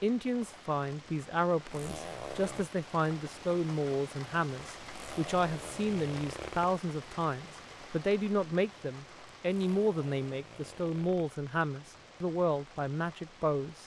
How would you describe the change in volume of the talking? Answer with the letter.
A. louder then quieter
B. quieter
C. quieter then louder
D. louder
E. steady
E.